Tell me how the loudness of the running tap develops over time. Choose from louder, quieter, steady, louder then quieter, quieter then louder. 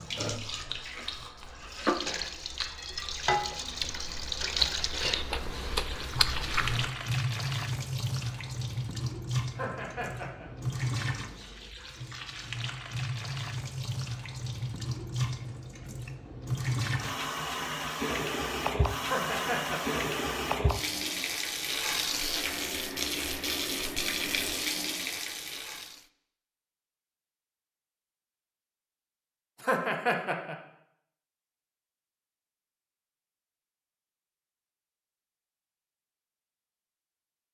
steady.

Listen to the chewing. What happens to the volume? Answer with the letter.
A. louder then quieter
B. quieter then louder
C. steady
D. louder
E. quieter
D.